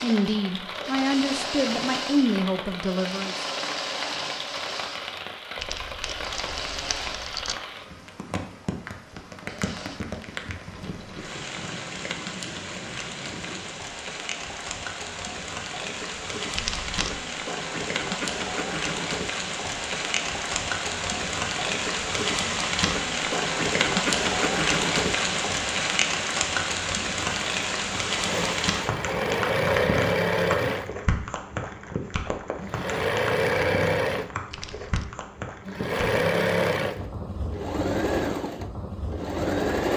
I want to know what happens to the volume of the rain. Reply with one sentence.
The loudness of the rain goes up, then down.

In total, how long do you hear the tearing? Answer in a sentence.
The tearing can be heard for 3 seconds in total.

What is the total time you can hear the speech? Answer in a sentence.
The speech can be heard for 3 seconds in total.